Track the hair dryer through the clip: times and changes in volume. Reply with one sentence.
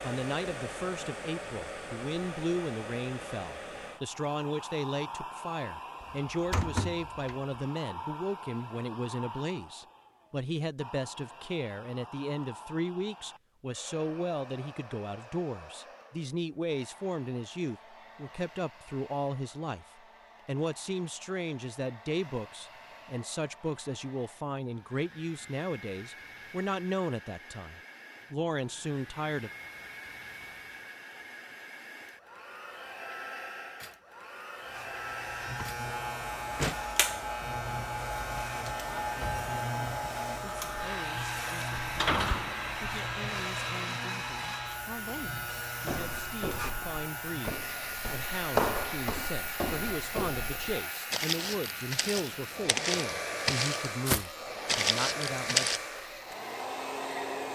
You can hear the hair dryer from 0.0 to 57.5 s, getting quieter then louder.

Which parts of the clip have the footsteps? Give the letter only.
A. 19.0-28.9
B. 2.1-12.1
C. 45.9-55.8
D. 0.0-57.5
C.